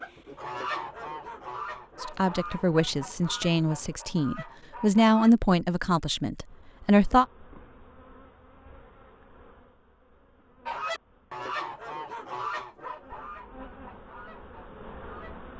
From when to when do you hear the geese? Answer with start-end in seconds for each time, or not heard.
0.0-5.3, 10.7-15.4.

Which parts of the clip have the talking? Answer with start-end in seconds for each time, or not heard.
2.0-7.2.